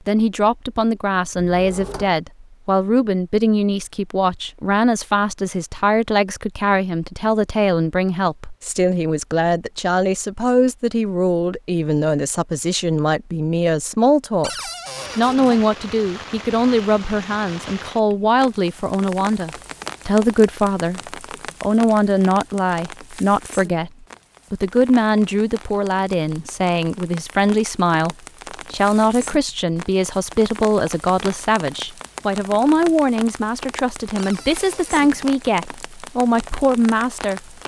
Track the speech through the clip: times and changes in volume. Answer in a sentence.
The speech can be heard from 0.1 to 37.4 s, at a steady volume.